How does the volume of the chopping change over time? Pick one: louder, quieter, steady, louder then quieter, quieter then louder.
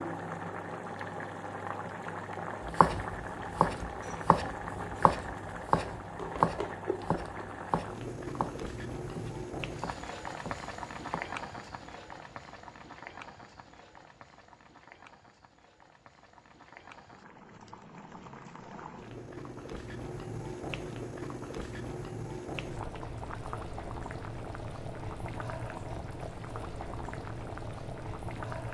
quieter.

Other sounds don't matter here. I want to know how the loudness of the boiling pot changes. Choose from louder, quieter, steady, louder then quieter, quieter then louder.
quieter then louder.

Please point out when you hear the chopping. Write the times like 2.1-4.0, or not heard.
2.6-11.2.